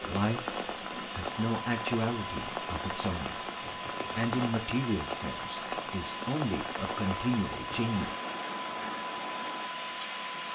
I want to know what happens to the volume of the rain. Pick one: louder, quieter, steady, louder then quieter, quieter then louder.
steady.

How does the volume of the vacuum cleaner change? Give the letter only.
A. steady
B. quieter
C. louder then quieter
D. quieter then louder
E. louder
A.